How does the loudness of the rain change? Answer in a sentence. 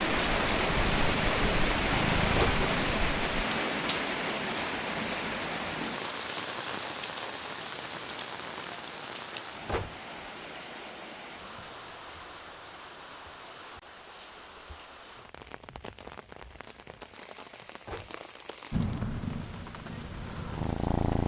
The loudness of the rain goes down.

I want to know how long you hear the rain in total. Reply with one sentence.
The rain can be heard for 21 seconds in total.